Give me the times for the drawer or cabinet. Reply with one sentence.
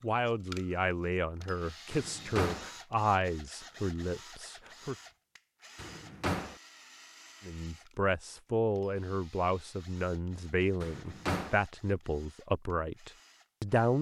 You can hear the drawer or cabinet from 1.9 to 2.7 s, from 5.8 to 6.5 s and from 10.8 to 11.6 s.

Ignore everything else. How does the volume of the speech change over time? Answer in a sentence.
The loudness of the speech stays about the same.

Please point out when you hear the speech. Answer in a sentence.
The speech can be heard from 0.0 to 5.0 s and from 7.5 to 13.9 s.